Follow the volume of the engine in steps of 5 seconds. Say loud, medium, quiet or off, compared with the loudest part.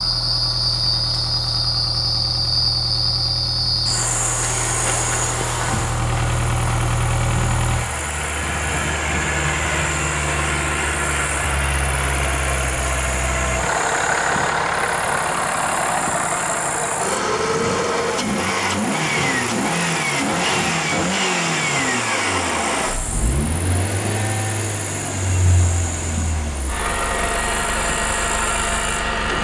medium, loud, loud, loud, loud, loud.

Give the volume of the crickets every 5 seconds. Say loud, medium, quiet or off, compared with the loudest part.
loud, medium, medium, medium, medium, medium.